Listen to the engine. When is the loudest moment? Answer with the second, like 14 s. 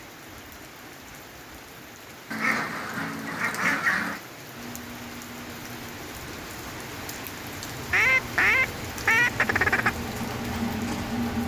11 s.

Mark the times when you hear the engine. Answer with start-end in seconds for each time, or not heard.
4.5-11.4.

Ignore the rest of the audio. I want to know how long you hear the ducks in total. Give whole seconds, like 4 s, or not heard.
4 s.